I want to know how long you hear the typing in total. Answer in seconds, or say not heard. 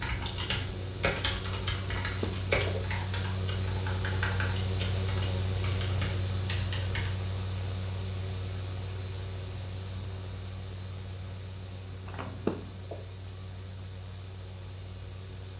7 s.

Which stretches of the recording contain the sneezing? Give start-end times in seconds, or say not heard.
2.0-2.9, 12.1-13.0.